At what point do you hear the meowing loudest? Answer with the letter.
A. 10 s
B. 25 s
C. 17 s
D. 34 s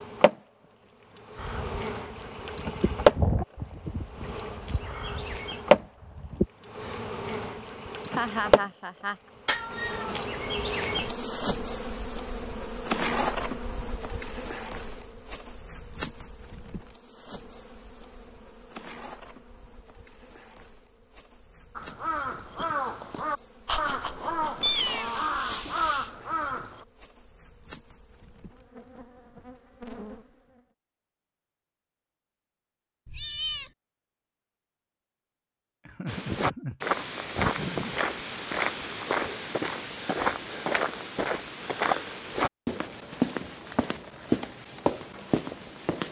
B.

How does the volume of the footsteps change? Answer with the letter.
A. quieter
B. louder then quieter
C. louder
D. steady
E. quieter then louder
D.